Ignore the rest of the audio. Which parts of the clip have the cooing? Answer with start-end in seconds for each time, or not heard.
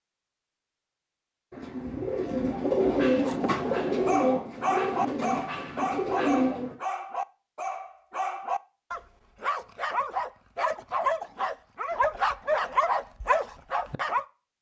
1.5-6.8.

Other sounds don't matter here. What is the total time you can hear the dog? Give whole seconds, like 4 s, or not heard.
11 s.